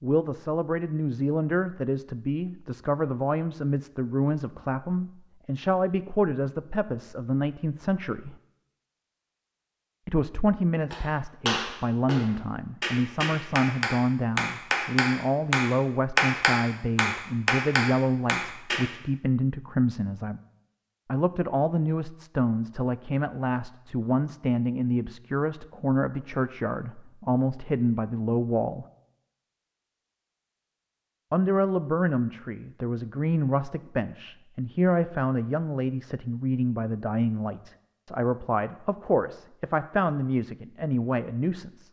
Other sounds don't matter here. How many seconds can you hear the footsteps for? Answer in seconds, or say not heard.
not heard.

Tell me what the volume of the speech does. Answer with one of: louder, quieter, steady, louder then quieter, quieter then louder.
steady.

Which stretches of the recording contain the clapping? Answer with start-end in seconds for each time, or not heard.
10.9-18.9.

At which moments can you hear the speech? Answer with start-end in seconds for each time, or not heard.
0.0-8.3, 10.1-20.4, 21.1-28.9, 31.3-41.8.